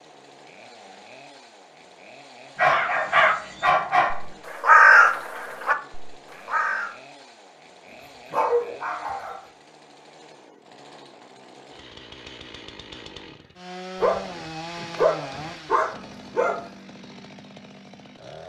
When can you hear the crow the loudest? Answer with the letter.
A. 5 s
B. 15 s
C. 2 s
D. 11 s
A.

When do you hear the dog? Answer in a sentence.
The dog can be heard from 2.5 to 4.2 s, from 8.3 to 9.3 s and from 14.0 to 16.6 s.